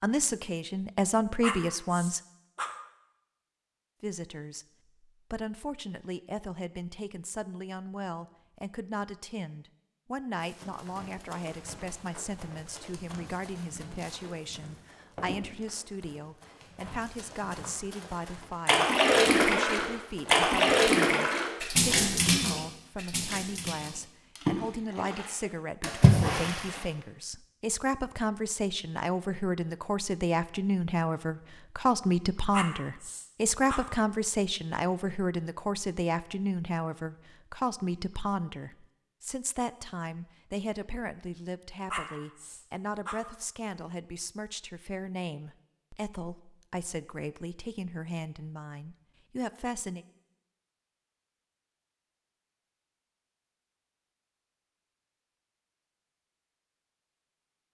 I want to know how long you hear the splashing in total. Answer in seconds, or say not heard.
8 s.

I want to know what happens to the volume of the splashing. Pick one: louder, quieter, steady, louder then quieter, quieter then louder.
quieter then louder.